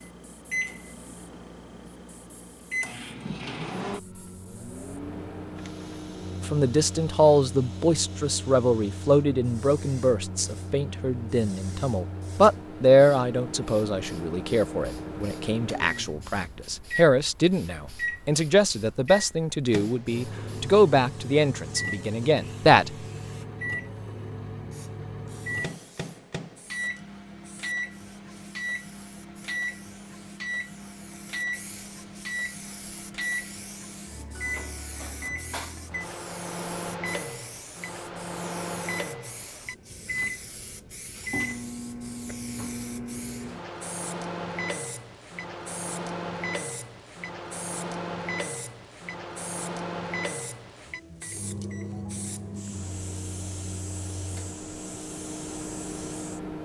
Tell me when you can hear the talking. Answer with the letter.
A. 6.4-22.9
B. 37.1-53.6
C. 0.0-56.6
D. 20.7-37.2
A.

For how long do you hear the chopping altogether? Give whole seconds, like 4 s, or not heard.
not heard.